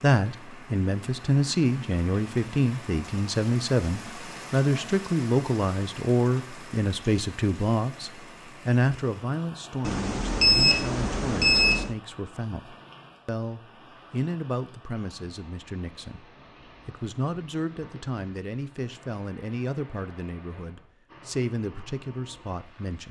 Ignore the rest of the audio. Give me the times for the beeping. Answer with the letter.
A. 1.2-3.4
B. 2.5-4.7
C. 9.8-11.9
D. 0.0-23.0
C.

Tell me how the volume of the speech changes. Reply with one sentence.
The volume of the speech goes down.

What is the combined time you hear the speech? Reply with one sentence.
You can hear the speech for 23 seconds altogether.